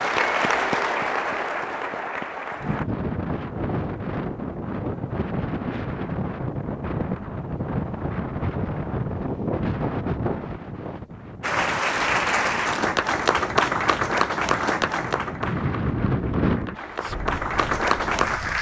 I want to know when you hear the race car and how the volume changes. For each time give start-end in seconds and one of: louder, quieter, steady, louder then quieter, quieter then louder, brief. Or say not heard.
not heard.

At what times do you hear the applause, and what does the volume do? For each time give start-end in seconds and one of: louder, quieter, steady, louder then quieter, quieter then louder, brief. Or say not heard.
0.0-2.9 brief
11.4-18.5 quieter then louder.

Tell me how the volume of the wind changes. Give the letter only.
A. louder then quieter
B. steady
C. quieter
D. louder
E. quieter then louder
E.